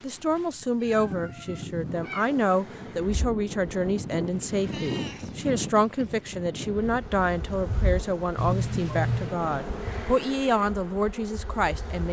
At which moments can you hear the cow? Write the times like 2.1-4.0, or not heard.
not heard.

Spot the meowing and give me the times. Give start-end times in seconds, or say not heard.
0.3-2.3, 4.6-6.2, 8.3-9.3.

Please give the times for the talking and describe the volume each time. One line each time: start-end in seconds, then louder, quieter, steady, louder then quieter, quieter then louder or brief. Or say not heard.
0.0-12.0 steady.